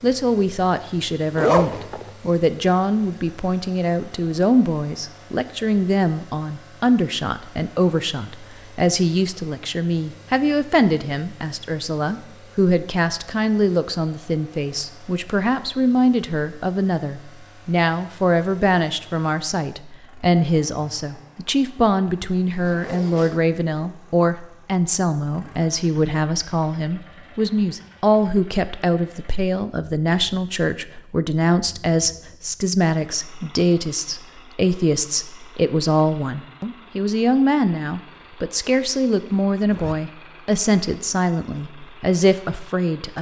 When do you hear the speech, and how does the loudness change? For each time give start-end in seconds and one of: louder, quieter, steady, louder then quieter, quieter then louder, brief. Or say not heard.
0.0-43.1 steady.